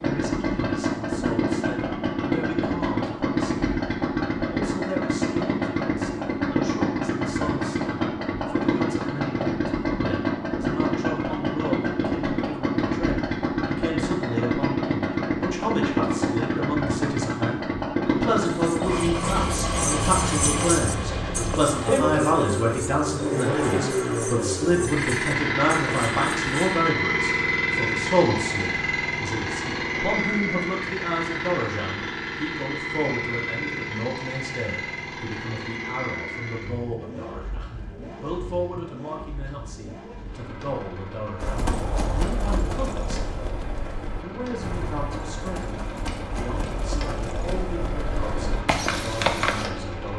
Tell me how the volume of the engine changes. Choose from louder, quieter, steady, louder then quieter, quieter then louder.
quieter.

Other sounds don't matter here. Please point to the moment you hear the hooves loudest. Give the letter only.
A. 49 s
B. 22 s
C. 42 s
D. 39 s
A.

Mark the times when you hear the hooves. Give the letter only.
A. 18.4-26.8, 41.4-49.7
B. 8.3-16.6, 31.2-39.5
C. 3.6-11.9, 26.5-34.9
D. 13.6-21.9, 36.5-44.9
A.